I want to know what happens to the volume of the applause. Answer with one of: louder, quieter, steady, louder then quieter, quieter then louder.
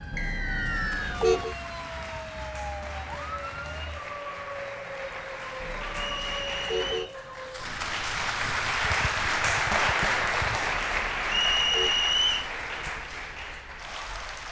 louder then quieter.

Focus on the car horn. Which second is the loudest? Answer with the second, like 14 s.
1 s.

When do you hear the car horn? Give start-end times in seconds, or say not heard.
0.1-1.6, 5.6-7.1, 10.7-11.9.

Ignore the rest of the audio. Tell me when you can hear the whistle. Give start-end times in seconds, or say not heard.
0.1-1.2, 6.0-7.2, 11.2-12.5.